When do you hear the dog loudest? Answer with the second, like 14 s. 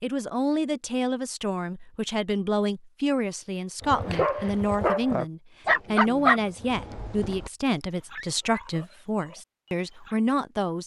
6 s.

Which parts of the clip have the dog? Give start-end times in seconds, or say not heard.
3.8-10.2.